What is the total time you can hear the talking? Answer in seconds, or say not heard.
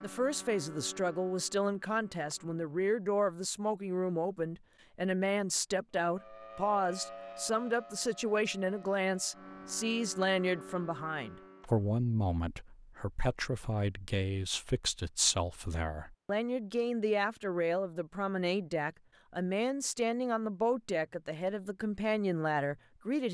23 s.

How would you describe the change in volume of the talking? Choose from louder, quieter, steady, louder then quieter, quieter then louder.
steady.